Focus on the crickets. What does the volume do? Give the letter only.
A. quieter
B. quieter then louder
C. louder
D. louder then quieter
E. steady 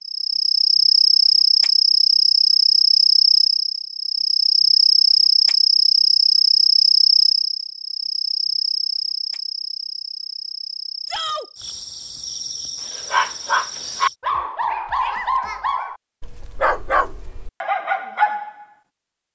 A.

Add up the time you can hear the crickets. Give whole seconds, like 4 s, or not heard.
14 s.